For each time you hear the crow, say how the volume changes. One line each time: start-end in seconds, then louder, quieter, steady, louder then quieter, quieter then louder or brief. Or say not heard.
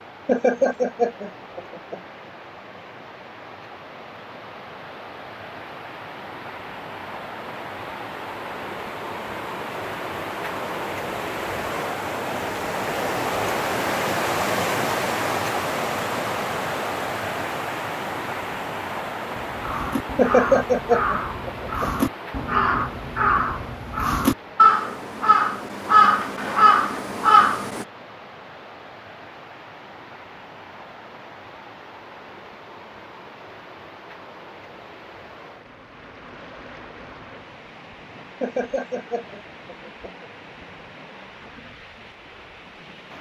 19.4-27.9 louder.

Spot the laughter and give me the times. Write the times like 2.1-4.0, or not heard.
0.2-2.0, 20.1-22.1, 38.4-40.2.